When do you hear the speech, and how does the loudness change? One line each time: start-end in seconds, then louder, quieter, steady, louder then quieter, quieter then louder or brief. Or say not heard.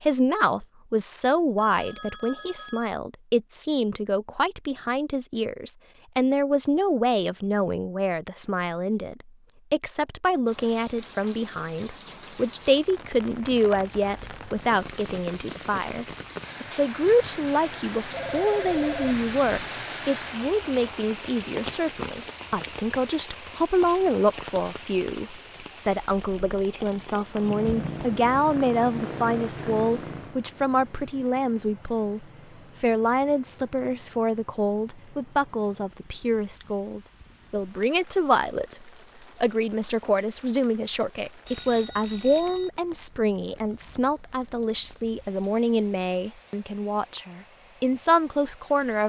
0.0-49.0 steady.